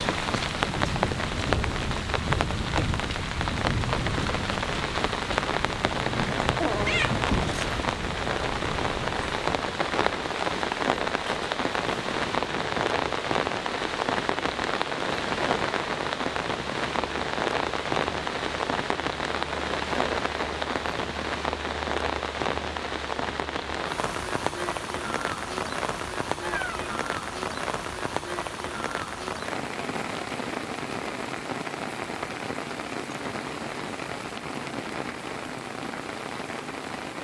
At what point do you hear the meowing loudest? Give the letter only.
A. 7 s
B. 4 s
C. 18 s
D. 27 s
A.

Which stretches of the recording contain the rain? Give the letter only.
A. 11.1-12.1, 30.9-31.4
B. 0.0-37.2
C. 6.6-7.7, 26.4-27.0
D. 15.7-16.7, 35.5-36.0
B.